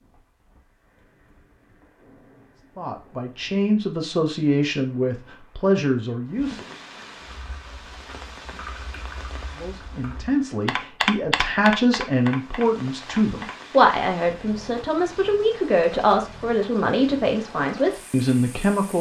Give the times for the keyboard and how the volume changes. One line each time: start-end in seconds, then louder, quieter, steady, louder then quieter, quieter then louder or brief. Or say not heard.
7.2-13.8 louder then quieter.